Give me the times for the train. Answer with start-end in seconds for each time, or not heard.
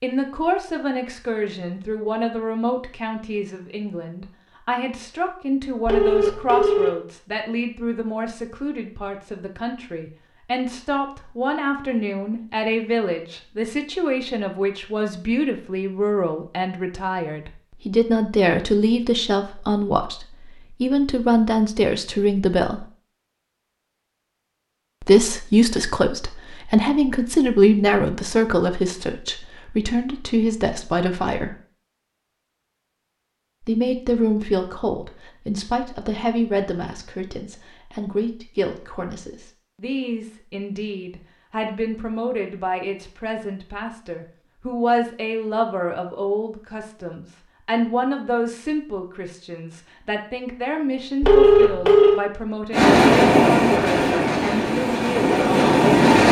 52.7-56.2.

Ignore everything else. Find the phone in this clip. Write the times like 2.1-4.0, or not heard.
5.8-7.0, 51.2-52.2.